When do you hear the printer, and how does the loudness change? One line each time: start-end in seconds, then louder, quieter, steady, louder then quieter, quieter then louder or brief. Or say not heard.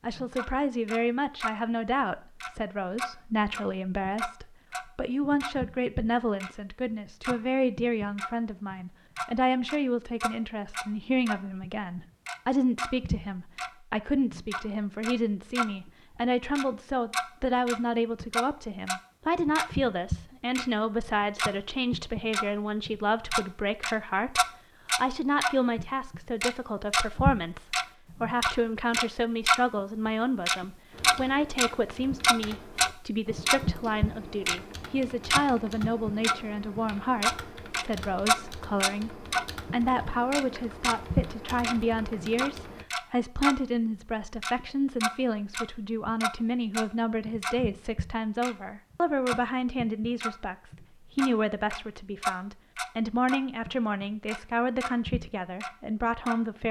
not heard.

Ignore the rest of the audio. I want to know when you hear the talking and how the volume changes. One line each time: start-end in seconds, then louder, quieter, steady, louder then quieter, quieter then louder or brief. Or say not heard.
0.0-56.6 steady.